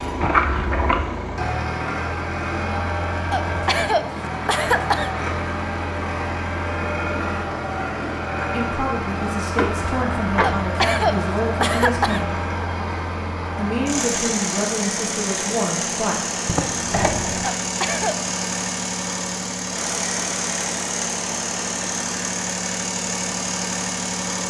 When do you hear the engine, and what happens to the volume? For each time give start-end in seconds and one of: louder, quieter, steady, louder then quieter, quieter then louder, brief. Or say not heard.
0.0-24.4 steady.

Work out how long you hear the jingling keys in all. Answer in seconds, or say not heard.
3 s.